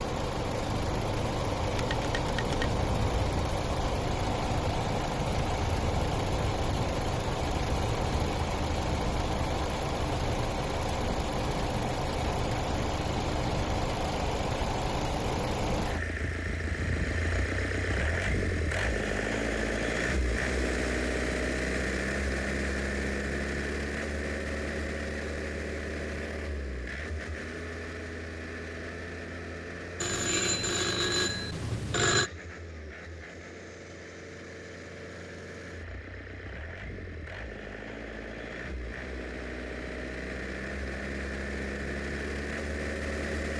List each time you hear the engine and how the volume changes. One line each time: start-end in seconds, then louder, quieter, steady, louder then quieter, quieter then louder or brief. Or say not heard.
0.0-43.5 quieter.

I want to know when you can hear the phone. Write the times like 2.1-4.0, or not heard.
1.8-2.7, 30.0-32.3.